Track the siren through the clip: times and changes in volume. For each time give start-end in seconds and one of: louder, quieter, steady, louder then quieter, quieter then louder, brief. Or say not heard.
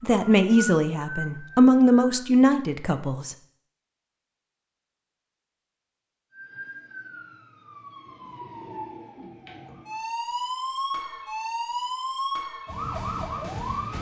0.0-2.3 brief
6.3-13.9 louder.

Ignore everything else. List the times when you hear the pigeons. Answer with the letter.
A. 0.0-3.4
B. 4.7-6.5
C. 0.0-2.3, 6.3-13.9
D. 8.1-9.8
D.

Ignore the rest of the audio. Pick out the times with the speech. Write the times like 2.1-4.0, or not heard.
0.0-3.4.